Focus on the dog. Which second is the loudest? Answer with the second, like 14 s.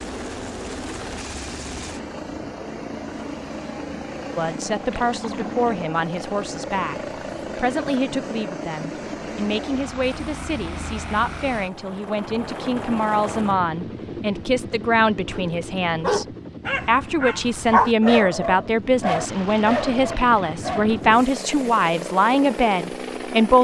18 s.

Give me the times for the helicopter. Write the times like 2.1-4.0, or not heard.
0.0-23.5.